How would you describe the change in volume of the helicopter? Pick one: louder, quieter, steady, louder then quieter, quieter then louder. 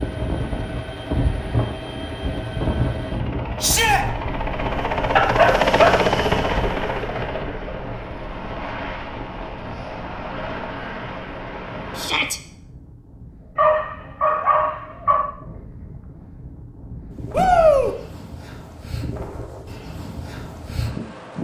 louder then quieter.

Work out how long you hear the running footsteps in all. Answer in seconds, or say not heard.
not heard.